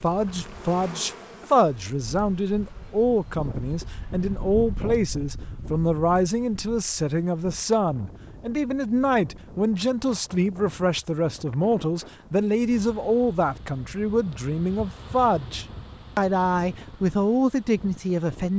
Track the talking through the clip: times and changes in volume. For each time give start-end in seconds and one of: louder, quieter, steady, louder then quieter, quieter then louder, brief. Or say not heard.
0.0-18.5 steady.